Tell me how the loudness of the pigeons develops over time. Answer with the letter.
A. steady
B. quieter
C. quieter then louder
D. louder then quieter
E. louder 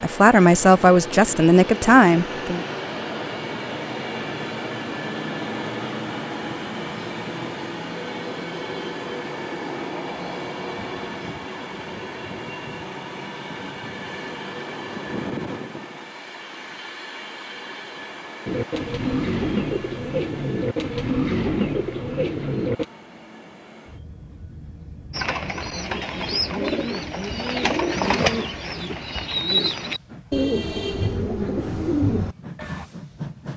A.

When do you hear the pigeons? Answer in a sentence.
The pigeons can be heard from 18.4 to 22.9 s and from 25.1 to 32.9 s.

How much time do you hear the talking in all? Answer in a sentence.
The talking can be heard for 3 seconds in total.